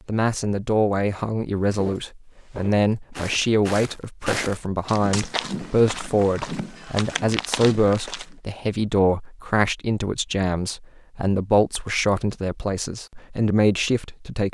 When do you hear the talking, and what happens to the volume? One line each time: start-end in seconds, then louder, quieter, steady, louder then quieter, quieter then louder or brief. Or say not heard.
0.1-14.5 steady.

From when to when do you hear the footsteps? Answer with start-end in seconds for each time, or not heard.
1.8-8.3.